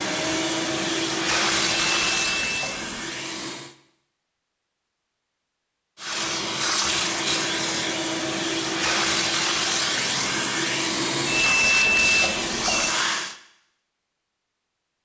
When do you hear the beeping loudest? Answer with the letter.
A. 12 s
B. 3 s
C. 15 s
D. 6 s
A.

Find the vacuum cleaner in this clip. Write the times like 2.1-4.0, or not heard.
0.0-3.8, 6.0-13.3.